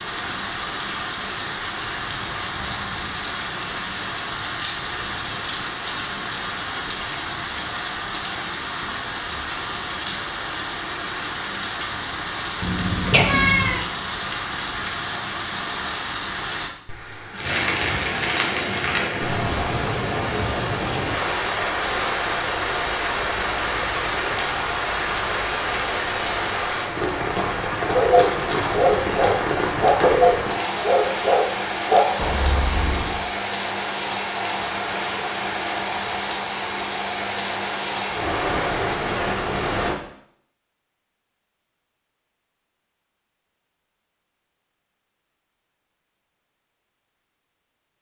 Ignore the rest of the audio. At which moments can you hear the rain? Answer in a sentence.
You can hear the rain from 0.0 to 40.0 s.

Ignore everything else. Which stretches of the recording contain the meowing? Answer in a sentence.
The meowing can be heard from 12.6 to 13.8 s.